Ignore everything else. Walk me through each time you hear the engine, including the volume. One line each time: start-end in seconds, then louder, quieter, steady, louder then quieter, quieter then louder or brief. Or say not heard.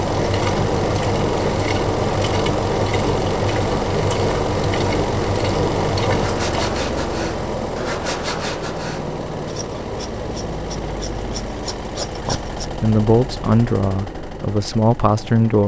0.0-15.6 quieter.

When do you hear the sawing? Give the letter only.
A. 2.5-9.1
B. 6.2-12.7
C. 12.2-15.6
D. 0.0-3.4
B.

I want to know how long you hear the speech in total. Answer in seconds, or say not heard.
3 s.